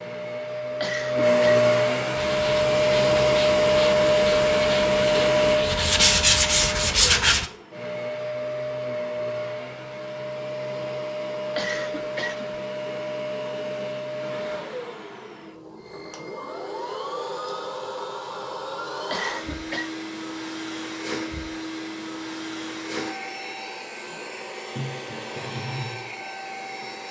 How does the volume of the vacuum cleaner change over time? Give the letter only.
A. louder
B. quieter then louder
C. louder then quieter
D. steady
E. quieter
E.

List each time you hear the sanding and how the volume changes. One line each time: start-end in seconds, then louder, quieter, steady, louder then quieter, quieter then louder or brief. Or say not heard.
2.1-7.5 louder.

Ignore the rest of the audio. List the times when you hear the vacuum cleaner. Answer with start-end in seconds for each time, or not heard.
0.0-27.0.